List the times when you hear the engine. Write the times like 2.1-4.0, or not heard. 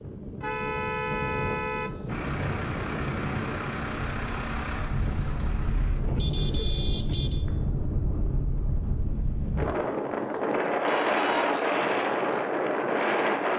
2.0-6.8.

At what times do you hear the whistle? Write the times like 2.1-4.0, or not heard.
not heard.